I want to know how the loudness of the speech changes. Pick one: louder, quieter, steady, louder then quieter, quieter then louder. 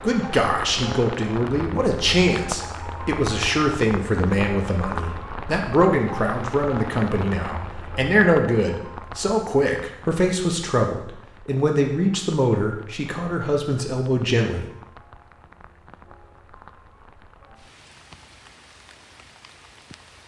steady.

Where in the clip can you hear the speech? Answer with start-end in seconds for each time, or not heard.
0.0-14.7.